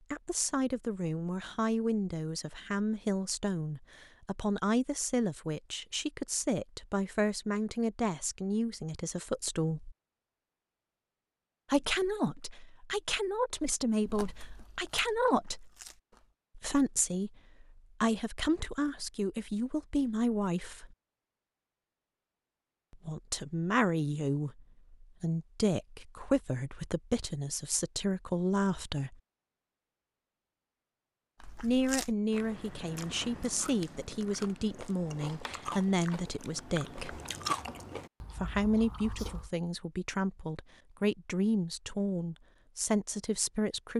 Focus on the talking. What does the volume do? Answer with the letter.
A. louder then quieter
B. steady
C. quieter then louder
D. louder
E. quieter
B.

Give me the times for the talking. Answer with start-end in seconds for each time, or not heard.
0.1-9.9, 11.7-15.7, 16.6-20.9, 22.9-29.1, 31.6-37.2, 38.4-43.9.